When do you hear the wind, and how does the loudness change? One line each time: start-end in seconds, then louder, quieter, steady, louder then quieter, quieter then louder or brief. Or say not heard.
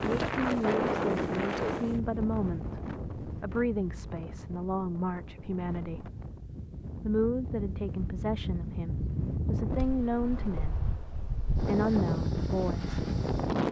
0.0-13.6 quieter then louder.